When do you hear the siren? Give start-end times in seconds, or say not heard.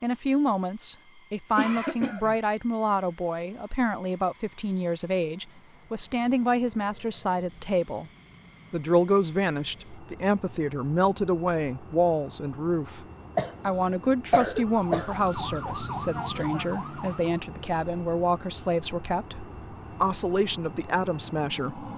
14.6-17.4.